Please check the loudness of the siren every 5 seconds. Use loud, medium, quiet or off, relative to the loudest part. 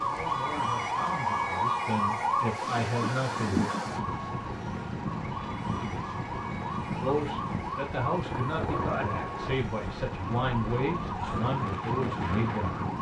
loud, medium, medium.